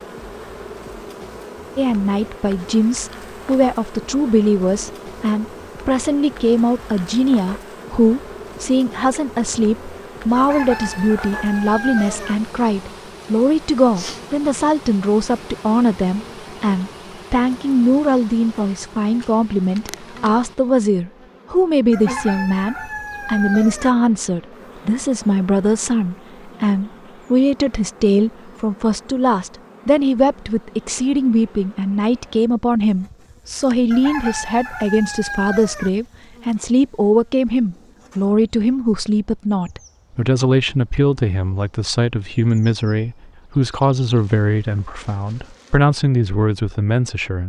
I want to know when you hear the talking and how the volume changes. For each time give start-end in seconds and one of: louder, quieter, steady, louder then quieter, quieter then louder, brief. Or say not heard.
1.8-47.4 steady.